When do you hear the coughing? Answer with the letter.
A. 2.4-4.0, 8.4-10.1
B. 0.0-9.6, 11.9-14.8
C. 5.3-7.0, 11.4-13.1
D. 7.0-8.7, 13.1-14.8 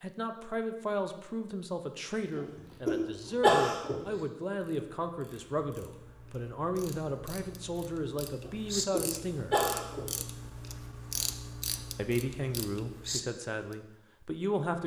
A.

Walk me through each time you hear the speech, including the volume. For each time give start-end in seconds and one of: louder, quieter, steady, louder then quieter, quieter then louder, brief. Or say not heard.
0.0-9.6 steady
11.9-14.8 brief.